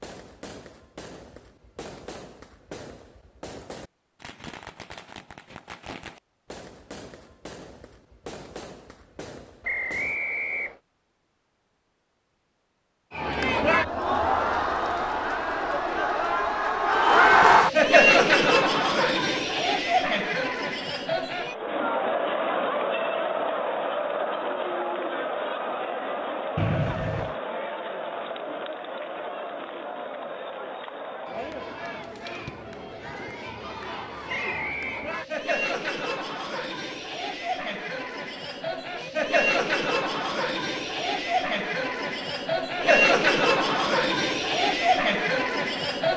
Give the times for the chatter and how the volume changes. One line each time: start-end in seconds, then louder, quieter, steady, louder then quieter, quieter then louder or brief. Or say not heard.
13.1-46.1 quieter then louder.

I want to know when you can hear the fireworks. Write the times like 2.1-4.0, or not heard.
0.0-10.2.